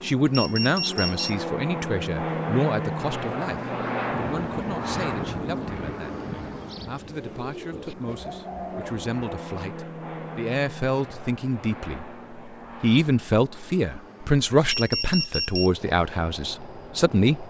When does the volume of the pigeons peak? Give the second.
5 s.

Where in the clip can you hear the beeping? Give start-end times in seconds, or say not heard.
0.3-1.4, 14.7-15.7.